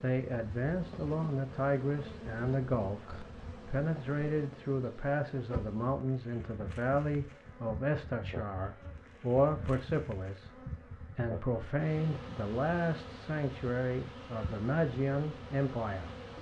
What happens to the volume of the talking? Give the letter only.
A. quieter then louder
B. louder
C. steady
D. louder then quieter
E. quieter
C.